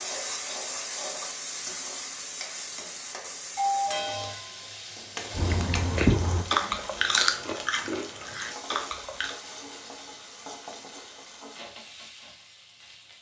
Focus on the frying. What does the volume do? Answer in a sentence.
The loudness of the frying goes down.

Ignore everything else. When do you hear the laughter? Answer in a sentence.
The laughter can't be heard in this clip.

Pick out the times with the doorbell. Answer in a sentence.
You can hear the doorbell from 3.5 to 4.3 s.